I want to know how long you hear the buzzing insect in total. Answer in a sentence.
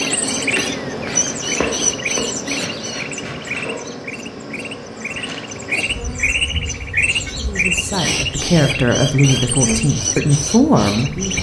The buzzing insect can be heard for 11 seconds in total.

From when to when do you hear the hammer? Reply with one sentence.
You can't hear the hammer here.